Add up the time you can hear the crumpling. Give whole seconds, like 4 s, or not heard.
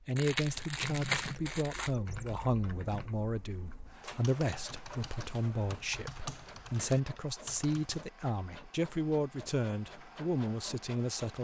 2 s.